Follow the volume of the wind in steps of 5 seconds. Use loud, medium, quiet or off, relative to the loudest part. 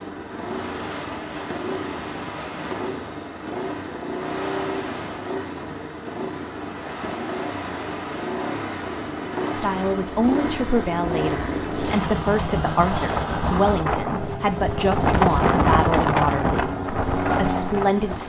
quiet, quiet, medium, loud.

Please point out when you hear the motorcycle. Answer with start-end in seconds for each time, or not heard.
0.0-18.2.